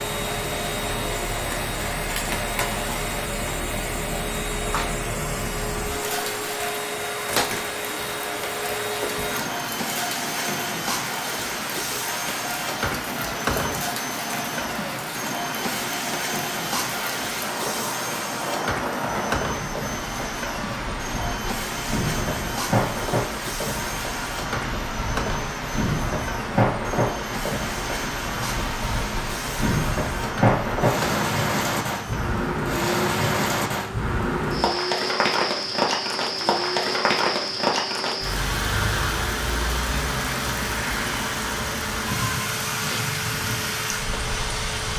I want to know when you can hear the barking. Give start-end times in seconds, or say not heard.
not heard.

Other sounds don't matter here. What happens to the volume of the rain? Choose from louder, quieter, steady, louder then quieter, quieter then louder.
louder.